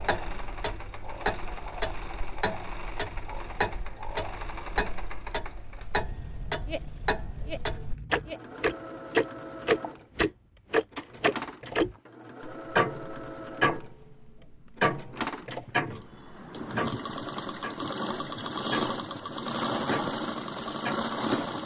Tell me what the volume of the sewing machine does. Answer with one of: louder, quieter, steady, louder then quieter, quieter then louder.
louder.